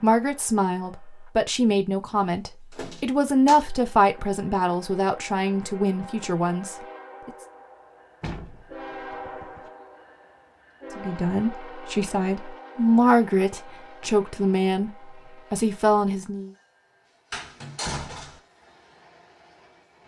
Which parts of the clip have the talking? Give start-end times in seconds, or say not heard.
0.0-7.3, 10.9-14.9, 15.5-16.5.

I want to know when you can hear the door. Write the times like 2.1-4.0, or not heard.
2.7-3.6, 8.2-9.7, 17.3-18.4.